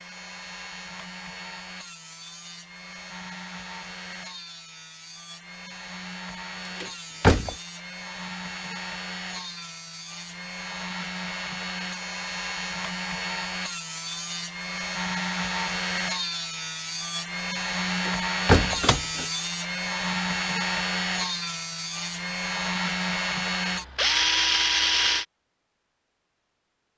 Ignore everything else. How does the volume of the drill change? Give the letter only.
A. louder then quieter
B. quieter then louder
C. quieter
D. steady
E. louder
E.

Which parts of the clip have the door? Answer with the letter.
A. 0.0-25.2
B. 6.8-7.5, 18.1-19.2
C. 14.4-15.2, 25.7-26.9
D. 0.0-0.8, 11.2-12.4
B.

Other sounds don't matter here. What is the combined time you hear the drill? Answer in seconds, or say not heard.
25 s.